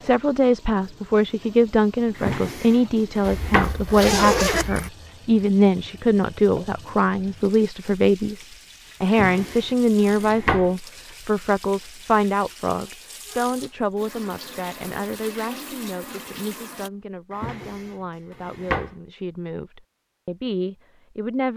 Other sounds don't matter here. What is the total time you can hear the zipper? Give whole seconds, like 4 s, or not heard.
2 s.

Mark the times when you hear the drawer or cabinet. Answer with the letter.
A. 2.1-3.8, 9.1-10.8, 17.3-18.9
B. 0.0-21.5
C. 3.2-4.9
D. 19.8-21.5
A.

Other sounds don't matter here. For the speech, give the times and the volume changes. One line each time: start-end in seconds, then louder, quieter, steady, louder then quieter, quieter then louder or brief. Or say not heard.
0.0-21.5 quieter.